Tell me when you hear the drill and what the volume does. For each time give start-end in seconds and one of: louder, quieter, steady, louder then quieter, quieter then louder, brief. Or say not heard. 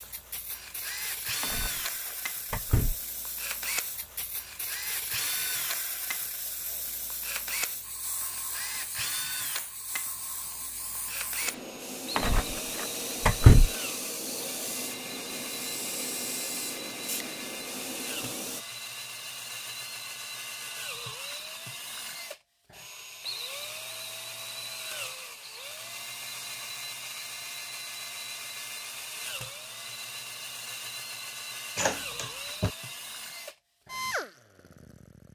0.0-35.3 steady.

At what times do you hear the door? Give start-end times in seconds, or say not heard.
1.4-3.0, 12.2-13.7, 31.8-32.7.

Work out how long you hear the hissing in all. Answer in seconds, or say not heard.
19 s.